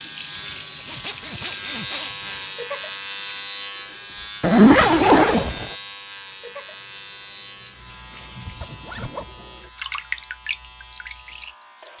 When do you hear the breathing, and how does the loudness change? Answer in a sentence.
The breathing can't be heard in this clip.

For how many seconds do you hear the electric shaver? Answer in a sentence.
The electric shaver can be heard for 12 seconds in total.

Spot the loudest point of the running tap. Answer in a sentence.
The volume of the running tap peaks at 10 seconds.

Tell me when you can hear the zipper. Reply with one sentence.
You can hear the zipper from 0.8 to 2.4 s, from 4.4 to 5.7 s and from 8.4 to 9.2 s.